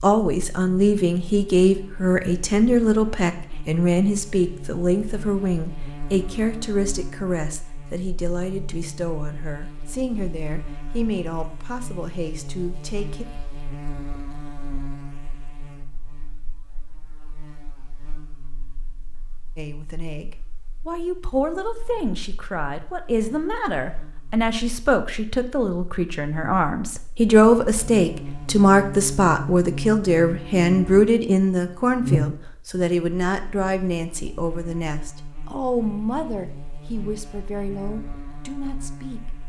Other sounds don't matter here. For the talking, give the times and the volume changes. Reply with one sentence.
You can hear the talking from 0.0 to 13.2 s, getting quieter; and from 19.6 to 39.2 s, getting louder then quieter.